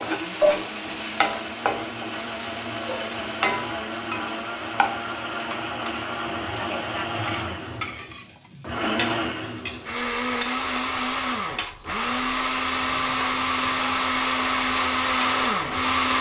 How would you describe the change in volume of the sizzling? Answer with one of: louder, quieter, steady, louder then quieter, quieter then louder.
quieter.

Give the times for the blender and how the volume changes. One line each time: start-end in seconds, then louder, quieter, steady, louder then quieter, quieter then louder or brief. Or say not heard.
0.0-16.1 louder.